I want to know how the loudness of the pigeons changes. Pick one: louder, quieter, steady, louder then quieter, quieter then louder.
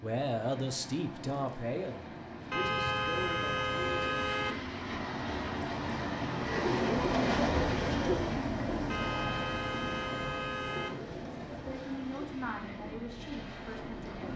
quieter.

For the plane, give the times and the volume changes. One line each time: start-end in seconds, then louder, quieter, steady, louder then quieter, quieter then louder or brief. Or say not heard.
0.0-14.3 louder then quieter.